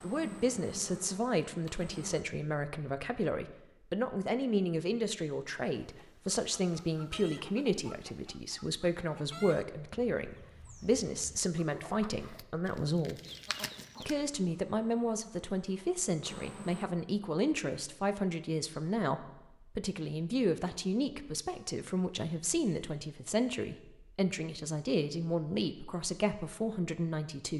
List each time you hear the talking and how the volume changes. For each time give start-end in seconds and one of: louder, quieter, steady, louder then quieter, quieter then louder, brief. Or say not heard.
0.0-13.2 steady
14.0-27.5 steady.